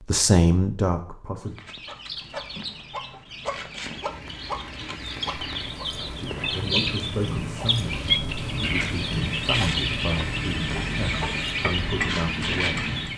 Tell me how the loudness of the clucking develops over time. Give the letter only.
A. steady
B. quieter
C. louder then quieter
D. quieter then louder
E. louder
E.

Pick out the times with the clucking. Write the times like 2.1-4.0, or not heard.
1.4-13.1.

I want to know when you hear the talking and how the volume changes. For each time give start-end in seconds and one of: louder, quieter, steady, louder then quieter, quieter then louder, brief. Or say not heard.
0.1-1.6 brief
6.2-12.9 steady.